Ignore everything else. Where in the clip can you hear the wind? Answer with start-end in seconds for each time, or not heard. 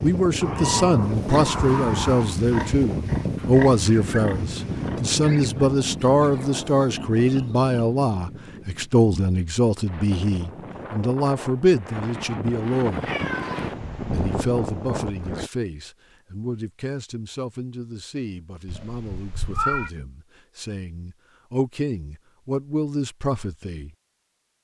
0.0-15.5.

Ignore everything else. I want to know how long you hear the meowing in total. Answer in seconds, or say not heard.
4 s.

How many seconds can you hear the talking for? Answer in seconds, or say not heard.
23 s.